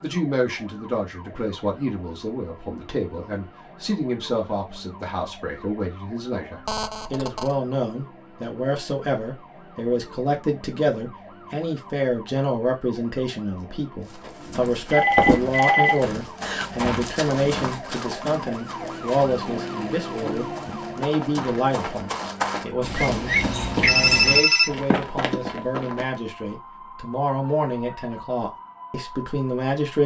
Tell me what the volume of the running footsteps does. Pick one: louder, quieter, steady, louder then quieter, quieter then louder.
quieter then louder.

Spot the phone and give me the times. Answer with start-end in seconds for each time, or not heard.
6.7-7.5, 14.9-16.6, 22.9-24.7.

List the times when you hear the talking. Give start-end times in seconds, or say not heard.
0.0-30.0.